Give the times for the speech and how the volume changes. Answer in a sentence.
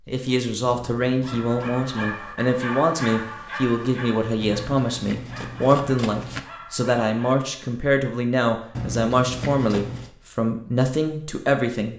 The speech can be heard from 0.1 to 11.9 s, at a steady volume.